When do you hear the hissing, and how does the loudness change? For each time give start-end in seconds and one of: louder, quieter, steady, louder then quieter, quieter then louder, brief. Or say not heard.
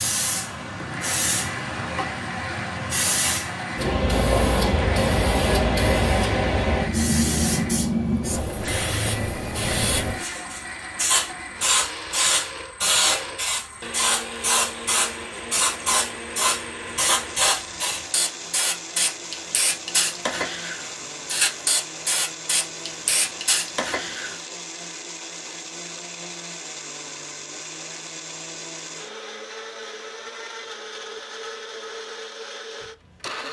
0.0-24.4 steady.